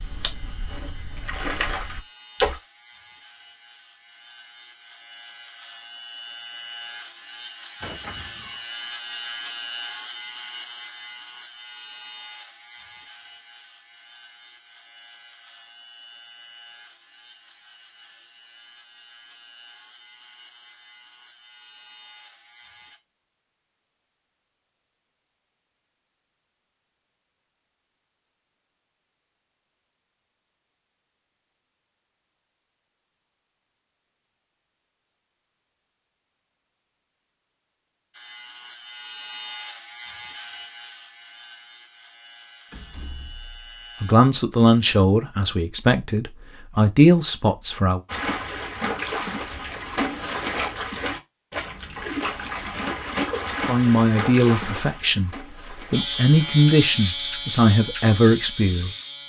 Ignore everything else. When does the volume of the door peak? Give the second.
8 s.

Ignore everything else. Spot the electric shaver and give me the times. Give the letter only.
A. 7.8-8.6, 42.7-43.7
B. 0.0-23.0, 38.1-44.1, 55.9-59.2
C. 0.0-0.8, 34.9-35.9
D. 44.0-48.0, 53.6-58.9
B.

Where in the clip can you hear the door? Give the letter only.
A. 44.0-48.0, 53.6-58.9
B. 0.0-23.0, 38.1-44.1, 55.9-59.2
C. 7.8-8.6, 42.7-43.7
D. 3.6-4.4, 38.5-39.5
C.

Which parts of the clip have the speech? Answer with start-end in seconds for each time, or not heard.
44.0-48.0, 53.6-58.9.